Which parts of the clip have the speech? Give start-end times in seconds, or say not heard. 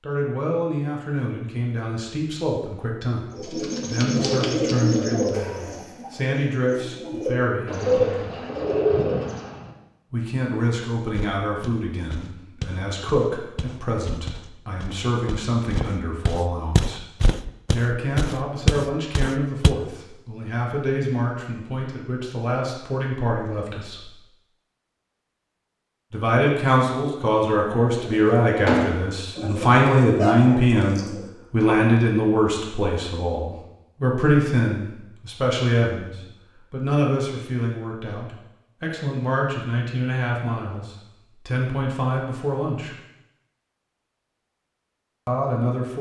0.0-8.4, 10.1-17.1, 17.7-24.1, 26.1-43.0, 45.2-45.9.